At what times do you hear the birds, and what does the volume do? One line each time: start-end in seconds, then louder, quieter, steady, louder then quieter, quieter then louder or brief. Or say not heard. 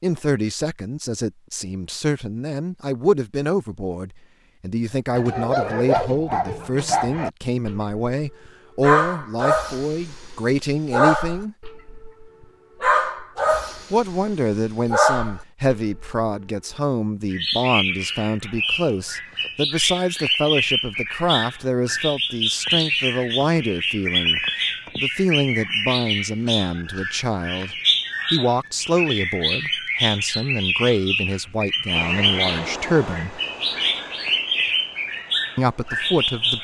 17.3-36.5 steady.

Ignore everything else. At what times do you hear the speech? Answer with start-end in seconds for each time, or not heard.
0.0-11.6, 13.9-33.4, 35.5-36.5.